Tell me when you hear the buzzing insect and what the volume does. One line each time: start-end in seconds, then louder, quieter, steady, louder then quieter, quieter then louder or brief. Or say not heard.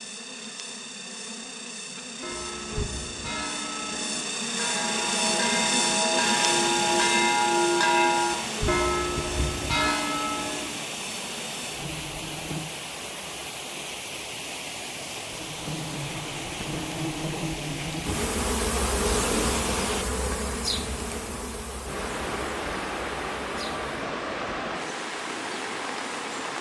0.0-12.7 louder then quieter
15.3-26.5 louder then quieter.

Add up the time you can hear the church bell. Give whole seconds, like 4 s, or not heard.
9 s.